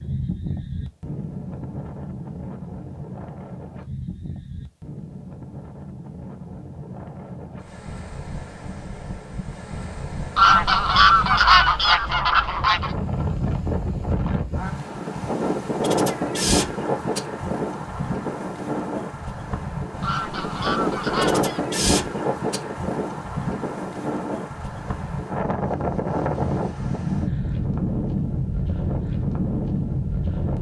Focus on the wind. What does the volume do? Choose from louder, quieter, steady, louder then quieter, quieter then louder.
louder.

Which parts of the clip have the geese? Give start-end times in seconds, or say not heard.
10.3-12.9, 20.0-21.6.